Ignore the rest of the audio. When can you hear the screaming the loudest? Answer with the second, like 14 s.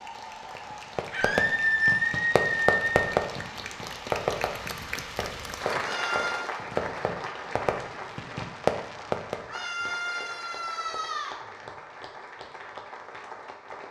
2 s.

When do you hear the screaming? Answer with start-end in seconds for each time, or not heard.
1.1-2.9, 5.8-6.5, 9.4-11.4.